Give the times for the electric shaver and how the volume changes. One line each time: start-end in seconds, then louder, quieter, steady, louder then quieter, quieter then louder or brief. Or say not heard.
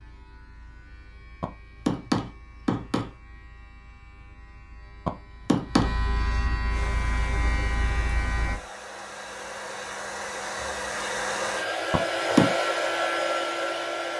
0.0-8.6 louder.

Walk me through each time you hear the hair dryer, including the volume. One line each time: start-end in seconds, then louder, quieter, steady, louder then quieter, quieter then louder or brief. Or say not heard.
6.7-14.1 louder.